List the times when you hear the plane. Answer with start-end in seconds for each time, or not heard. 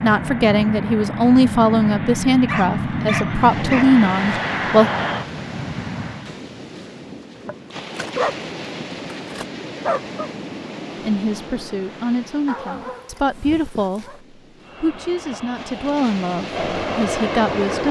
0.0-6.3, 14.6-17.8.